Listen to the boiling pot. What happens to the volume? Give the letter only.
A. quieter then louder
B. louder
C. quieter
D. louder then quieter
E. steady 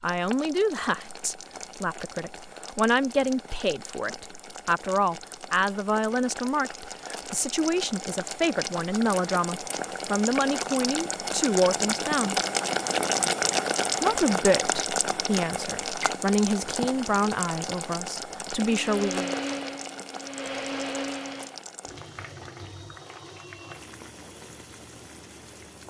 D.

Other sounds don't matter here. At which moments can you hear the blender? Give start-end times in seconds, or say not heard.
18.6-21.6.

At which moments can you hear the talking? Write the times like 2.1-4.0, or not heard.
0.0-12.3, 14.0-19.4.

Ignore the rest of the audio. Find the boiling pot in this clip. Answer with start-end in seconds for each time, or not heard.
0.0-25.8.